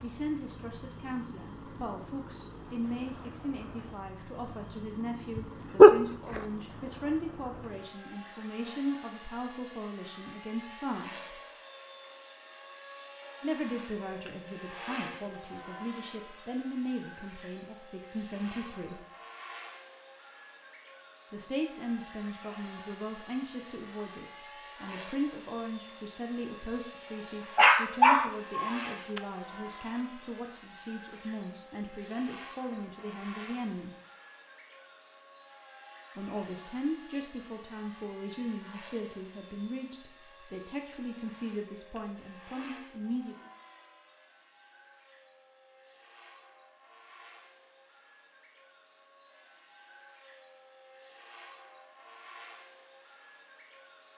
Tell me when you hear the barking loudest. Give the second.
6 s.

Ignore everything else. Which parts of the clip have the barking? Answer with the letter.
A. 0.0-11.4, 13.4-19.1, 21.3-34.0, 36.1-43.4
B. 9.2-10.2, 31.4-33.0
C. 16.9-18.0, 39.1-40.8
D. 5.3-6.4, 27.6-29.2
D.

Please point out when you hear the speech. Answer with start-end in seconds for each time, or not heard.
0.0-11.4, 13.4-19.1, 21.3-34.0, 36.1-43.4.